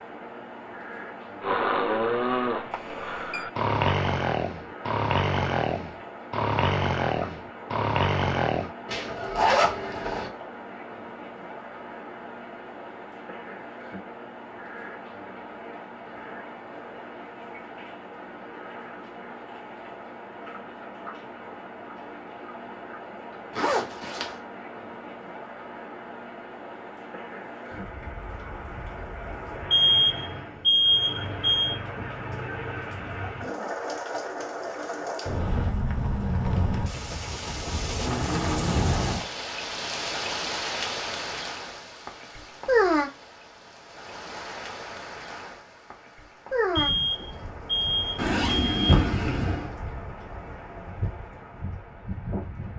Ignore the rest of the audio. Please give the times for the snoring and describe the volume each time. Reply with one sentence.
You can hear the snoring from 1.4 to 8.7 s, at a steady volume.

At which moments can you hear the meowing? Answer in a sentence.
You can't hear the meowing here.